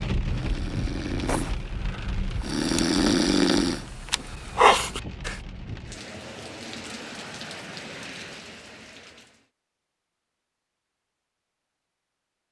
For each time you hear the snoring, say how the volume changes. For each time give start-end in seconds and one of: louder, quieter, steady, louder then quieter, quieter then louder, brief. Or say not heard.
0.3-5.4 quieter then louder.